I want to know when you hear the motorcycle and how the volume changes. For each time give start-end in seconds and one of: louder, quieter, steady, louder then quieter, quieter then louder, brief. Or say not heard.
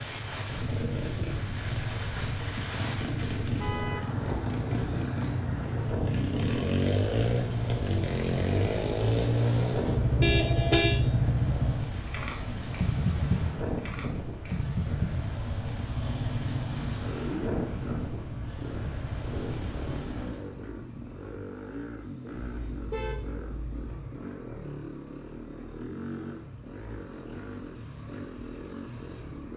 0.0-29.5 louder then quieter.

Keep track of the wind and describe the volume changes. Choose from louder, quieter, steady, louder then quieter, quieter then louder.
steady.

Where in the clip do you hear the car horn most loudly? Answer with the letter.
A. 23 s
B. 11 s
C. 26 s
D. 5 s
B.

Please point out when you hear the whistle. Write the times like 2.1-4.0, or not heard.
not heard.